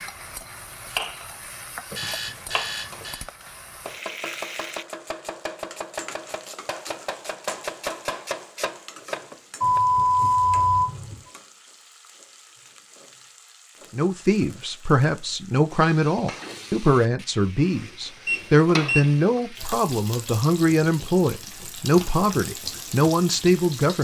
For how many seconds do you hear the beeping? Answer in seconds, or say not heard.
4 s.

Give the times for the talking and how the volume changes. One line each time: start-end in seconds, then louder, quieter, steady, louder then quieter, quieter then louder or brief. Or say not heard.
13.9-23.9 steady.